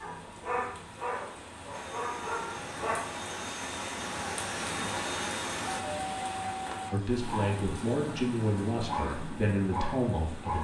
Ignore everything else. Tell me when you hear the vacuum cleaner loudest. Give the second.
5 s.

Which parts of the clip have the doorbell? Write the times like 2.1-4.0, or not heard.
5.7-7.0.